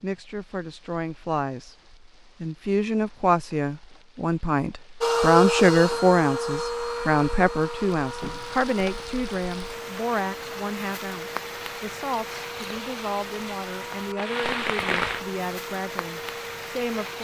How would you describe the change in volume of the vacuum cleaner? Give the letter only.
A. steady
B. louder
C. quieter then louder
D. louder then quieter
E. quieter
E.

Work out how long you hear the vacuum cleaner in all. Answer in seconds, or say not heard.
12 s.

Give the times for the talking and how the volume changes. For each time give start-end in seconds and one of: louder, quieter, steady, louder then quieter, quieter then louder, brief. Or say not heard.
0.0-1.8 brief
2.4-17.1 quieter.